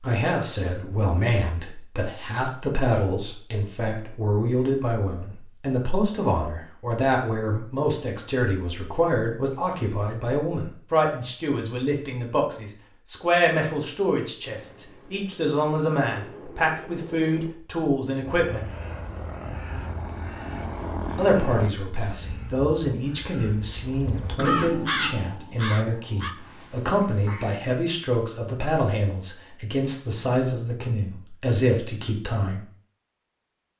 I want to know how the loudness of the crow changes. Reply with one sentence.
The loudness of the crow goes up, then down.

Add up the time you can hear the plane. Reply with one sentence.
The plane can be heard for 7 seconds in total.